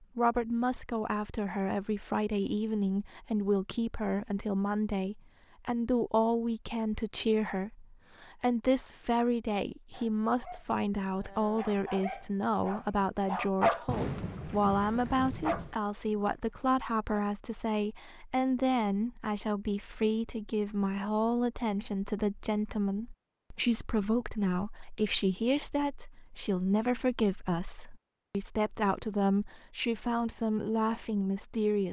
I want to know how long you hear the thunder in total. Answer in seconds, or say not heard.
2 s.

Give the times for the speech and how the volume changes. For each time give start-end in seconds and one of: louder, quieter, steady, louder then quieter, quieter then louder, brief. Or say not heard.
0.1-31.8 steady.